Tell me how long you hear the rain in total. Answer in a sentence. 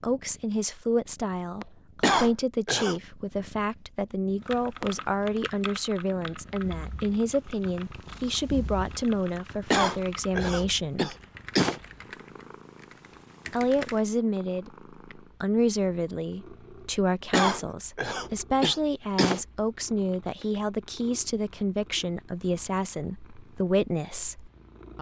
The rain can't be heard in this clip.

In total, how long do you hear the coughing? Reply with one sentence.
You can hear the coughing for 5 seconds altogether.